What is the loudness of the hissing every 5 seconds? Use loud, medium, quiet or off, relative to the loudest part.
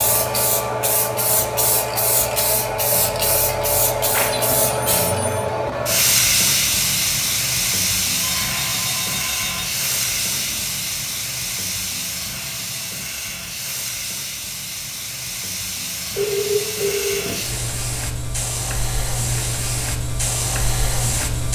loud, loud, medium, medium, loud.